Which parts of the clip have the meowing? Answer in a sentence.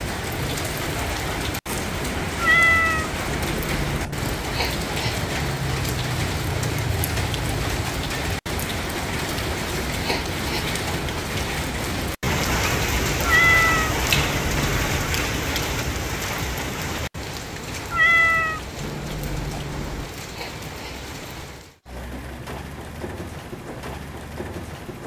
The meowing can be heard from 2.4 to 4.3 s, from 13.2 to 14.8 s and from 17.9 to 20.1 s.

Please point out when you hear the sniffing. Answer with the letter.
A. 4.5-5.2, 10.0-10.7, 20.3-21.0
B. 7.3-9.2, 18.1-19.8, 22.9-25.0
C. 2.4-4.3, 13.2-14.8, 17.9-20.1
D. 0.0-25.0
A.